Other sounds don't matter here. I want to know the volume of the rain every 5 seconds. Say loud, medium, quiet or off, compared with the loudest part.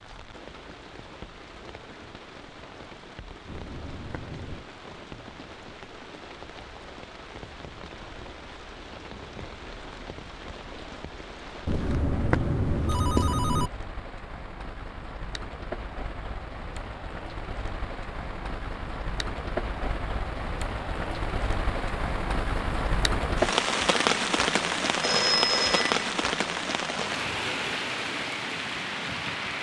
quiet, quiet, quiet, medium, loud, loud.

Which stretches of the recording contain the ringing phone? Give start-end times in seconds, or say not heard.
3.5-4.7, 11.7-13.7, 25.0-25.9.